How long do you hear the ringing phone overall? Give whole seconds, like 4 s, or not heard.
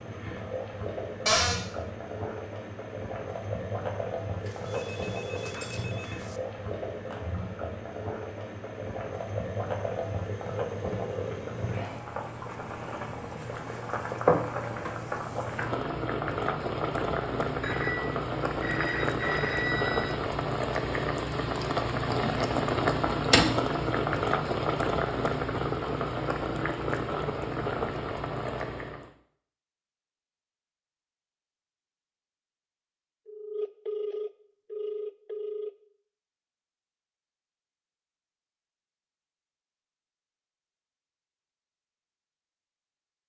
7 s.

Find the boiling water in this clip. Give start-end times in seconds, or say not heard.
0.0-29.1.